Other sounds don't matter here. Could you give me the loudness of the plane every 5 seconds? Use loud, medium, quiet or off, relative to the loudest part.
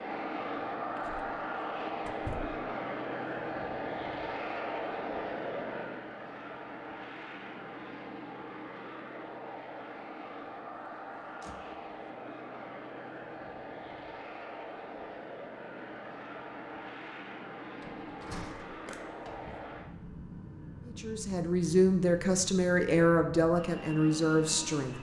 loud, medium, medium, medium, medium.